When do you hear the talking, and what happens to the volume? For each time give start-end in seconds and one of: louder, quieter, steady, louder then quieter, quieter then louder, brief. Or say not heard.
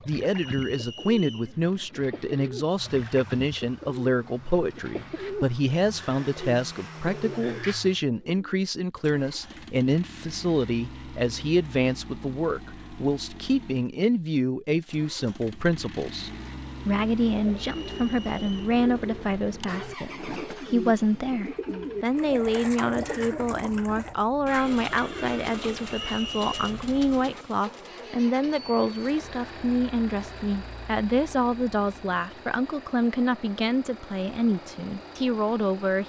0.1-36.0 steady.